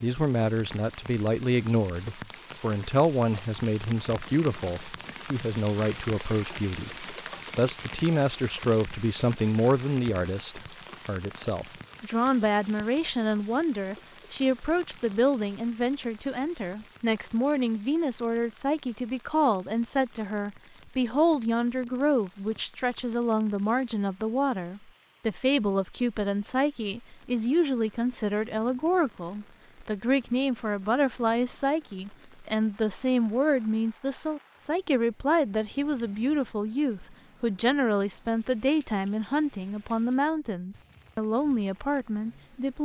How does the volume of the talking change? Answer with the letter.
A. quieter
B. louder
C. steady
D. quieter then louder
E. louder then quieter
C.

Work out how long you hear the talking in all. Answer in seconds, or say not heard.
43 s.